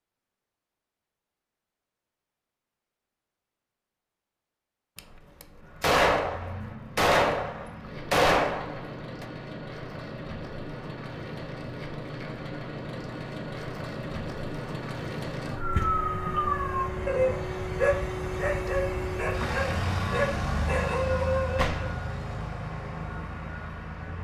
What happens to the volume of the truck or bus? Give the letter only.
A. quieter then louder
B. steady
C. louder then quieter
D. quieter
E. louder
E.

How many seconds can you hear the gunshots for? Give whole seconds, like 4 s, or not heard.
5 s.